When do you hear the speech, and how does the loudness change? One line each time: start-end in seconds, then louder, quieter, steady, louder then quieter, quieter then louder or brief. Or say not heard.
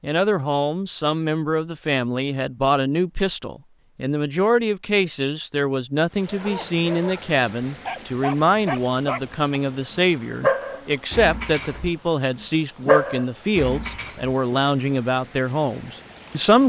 0.0-16.6 steady.